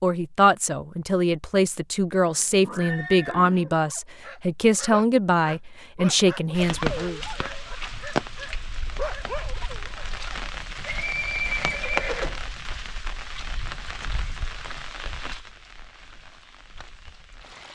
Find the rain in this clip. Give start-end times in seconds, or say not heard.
6.5-17.6.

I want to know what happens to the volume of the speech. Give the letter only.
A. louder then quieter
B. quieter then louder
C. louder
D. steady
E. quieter
D.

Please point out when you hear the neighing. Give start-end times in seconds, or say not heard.
2.2-3.6, 10.8-12.4.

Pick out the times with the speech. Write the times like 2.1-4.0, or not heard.
0.0-7.2.